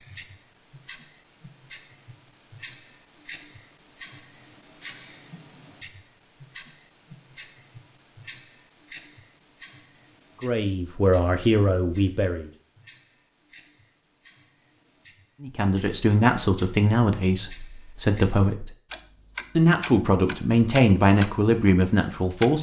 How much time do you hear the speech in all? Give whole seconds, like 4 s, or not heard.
8 s.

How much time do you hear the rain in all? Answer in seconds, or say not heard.
not heard.